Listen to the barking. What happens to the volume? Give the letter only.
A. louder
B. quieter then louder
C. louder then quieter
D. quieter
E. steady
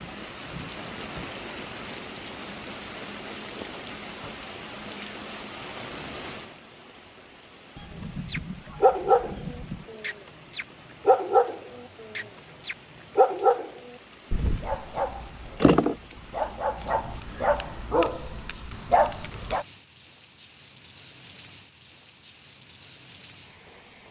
D.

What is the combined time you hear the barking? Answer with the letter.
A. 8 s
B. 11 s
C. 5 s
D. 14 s
B.